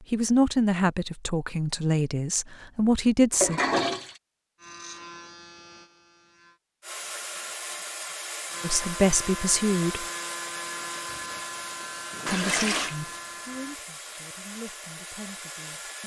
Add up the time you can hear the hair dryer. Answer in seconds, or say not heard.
9 s.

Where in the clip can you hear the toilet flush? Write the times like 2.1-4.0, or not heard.
3.3-4.2, 12.2-12.9.